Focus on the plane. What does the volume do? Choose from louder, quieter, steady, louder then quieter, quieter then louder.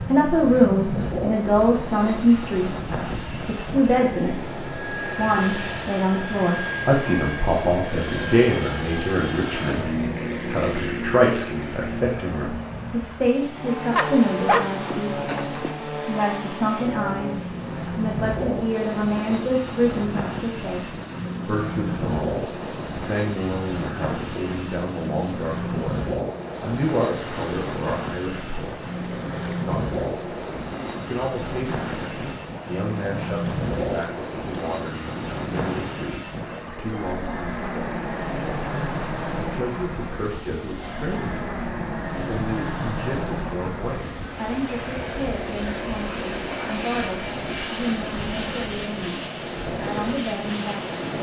steady.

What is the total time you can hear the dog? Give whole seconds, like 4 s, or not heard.
2 s.